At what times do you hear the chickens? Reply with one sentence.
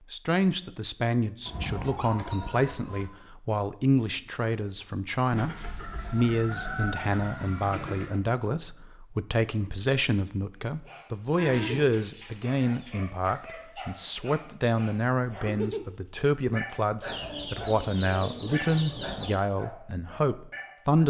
You can hear the chickens from 1.4 to 3.1 s, from 5.3 to 8.2 s, from 11.3 to 12.9 s and from 17.1 to 19.4 s.